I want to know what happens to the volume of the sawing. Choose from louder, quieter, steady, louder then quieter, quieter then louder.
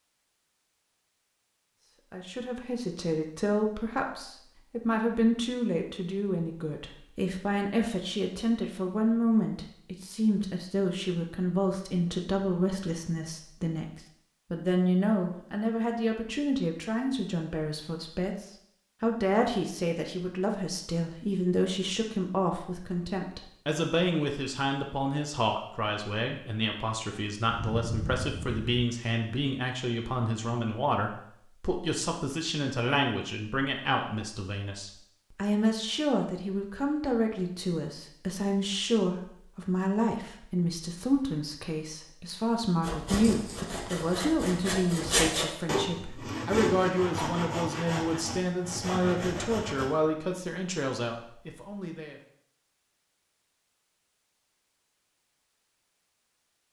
louder then quieter.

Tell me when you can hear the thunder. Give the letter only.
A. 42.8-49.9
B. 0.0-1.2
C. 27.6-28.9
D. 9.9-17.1
C.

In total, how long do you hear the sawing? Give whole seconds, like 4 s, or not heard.
7 s.